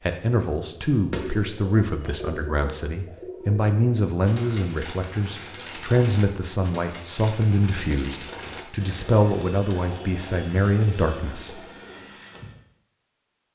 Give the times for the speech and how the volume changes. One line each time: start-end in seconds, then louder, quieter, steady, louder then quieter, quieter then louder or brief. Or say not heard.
0.1-11.7 steady.